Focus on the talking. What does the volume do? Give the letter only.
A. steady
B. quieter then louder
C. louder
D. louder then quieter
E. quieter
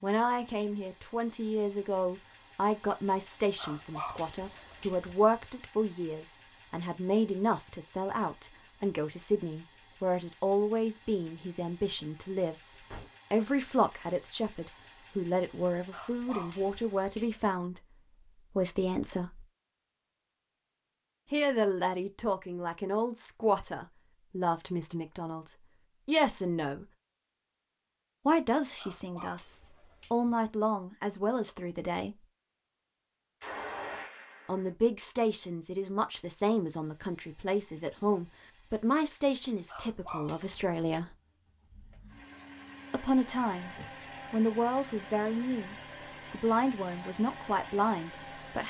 A.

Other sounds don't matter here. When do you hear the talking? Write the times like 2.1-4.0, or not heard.
0.0-19.4, 21.3-26.9, 28.2-32.2, 34.5-41.1, 42.9-48.6.